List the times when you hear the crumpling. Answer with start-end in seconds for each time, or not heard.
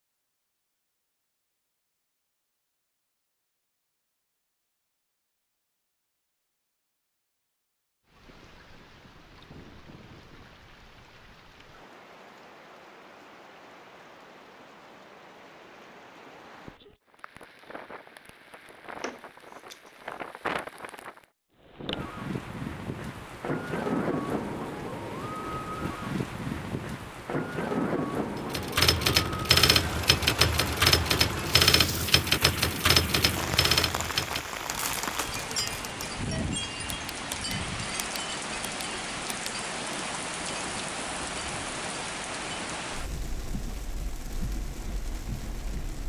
19.0-20.2, 34.7-35.8.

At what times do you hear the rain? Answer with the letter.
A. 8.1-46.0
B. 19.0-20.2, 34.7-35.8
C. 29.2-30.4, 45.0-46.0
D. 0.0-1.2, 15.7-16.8
A.